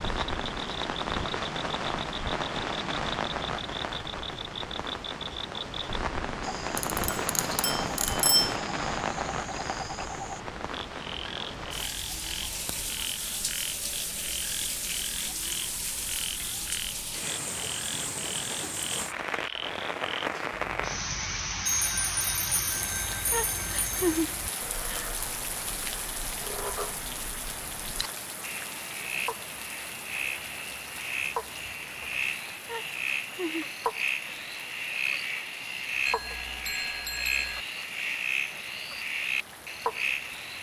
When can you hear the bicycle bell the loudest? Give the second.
8 s.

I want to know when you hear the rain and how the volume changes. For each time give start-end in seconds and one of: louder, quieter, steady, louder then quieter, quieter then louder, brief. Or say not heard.
0.0-40.5 quieter.